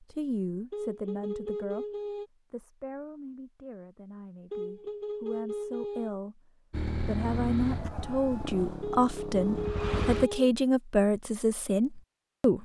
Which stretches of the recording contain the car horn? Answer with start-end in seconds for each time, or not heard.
0.7-2.3, 4.5-6.2, 8.8-10.5.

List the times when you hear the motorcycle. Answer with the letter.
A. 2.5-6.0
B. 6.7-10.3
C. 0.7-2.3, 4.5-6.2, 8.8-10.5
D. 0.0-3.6
B.